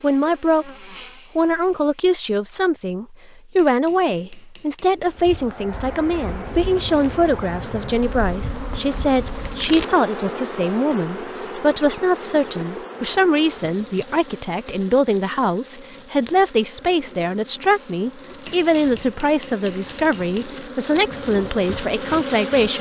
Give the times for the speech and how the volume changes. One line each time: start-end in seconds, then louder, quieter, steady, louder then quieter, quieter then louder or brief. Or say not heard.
0.0-0.7 brief
1.4-22.7 steady.